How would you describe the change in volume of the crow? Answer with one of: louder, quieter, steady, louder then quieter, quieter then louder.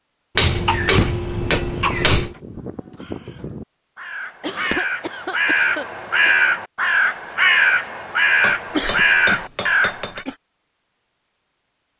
louder.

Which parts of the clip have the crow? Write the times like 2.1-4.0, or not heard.
1.2-10.2.